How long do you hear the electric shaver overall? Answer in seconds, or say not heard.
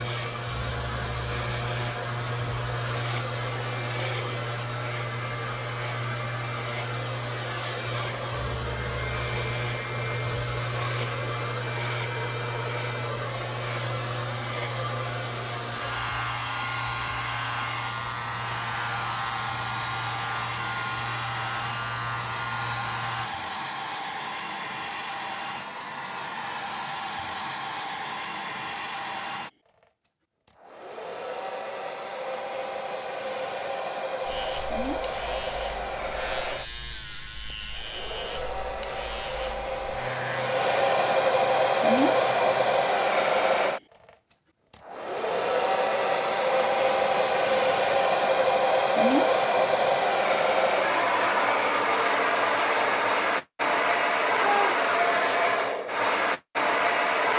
32 s.